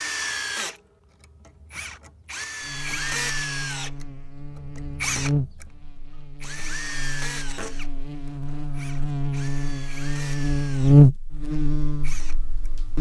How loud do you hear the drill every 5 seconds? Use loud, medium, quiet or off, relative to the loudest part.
loud, loud, medium.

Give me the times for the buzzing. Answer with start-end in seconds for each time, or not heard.
2.6-12.9.